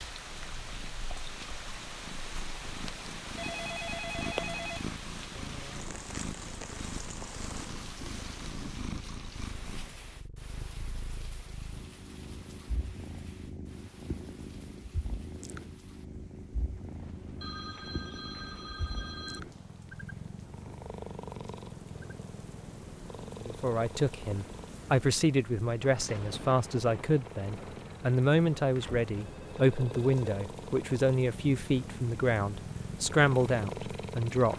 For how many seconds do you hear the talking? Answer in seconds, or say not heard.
11 s.